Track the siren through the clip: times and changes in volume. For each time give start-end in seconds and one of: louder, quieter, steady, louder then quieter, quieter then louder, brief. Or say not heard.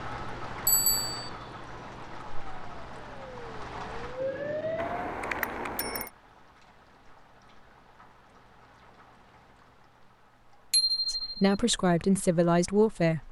0.0-5.3 louder.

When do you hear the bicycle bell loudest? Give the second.
11 s.